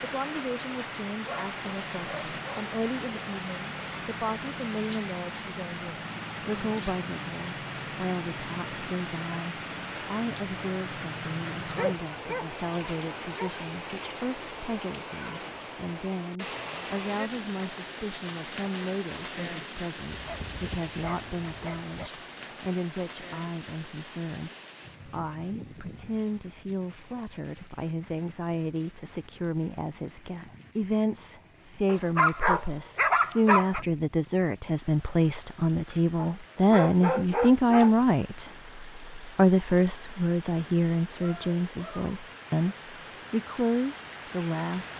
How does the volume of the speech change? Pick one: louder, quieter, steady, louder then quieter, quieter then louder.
louder.